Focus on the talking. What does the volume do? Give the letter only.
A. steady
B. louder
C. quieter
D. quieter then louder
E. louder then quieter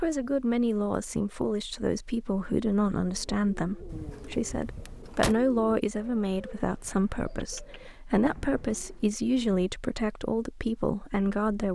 A.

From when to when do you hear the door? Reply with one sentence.
You can hear the door from 3.9 to 5.3 s.